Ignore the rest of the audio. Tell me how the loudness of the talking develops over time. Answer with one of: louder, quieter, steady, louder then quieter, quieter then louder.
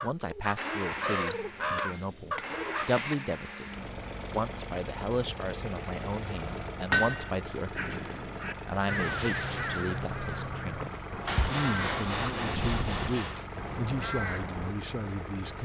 steady.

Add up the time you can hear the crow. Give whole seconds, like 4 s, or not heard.
10 s.